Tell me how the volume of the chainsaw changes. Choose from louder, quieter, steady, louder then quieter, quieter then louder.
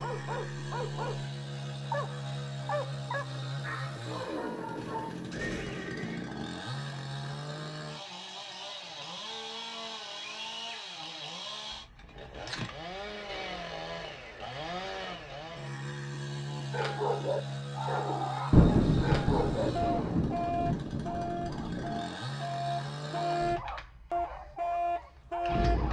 steady.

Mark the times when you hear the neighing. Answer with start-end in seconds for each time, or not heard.
4.8-6.3.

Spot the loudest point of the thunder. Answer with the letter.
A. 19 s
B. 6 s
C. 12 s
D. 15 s
A.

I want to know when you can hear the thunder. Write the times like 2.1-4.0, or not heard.
18.5-21.9.